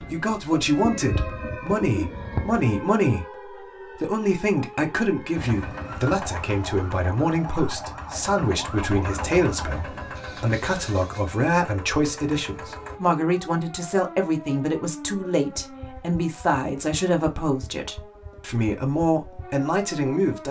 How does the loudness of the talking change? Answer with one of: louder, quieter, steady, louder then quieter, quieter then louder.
steady.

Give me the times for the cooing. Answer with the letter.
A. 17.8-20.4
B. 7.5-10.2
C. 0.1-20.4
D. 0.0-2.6
D.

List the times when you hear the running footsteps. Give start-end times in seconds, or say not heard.
not heard.